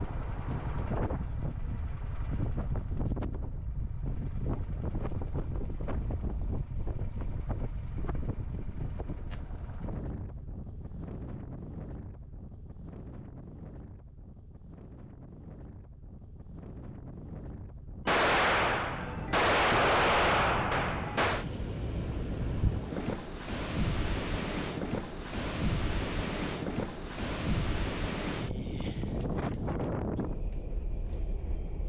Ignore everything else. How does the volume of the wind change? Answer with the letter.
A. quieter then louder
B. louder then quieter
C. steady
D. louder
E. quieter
A.